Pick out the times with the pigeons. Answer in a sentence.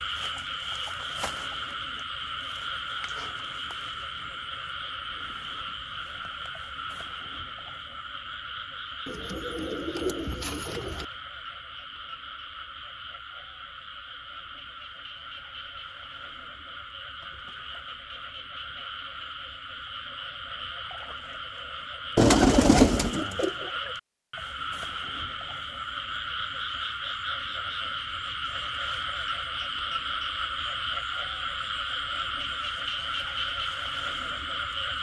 You can hear the pigeons from 9.1 to 11.1 s and from 22.1 to 23.6 s.